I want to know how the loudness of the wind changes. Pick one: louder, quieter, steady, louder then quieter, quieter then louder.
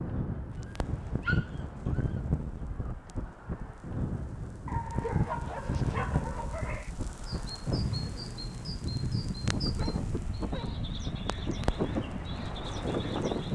steady.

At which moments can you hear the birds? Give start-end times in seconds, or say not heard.
6.5-13.5.